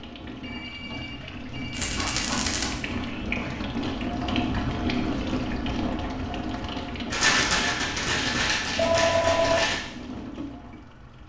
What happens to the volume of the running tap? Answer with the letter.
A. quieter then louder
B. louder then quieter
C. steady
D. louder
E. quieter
B.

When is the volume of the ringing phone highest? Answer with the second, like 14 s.
9 s.